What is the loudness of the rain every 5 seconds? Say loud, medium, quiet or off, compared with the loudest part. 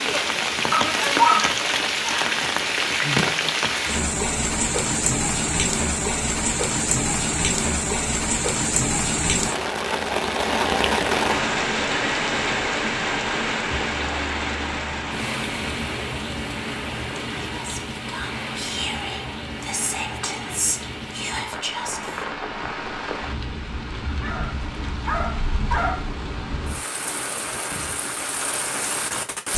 loud, loud, loud, medium, medium, medium.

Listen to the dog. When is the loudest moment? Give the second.
1 s.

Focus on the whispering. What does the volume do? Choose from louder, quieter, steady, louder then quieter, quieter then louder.
louder.